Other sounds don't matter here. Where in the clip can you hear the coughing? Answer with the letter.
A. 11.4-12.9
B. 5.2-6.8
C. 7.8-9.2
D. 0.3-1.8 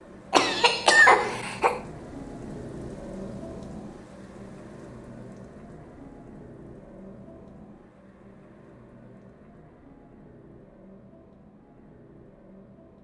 D.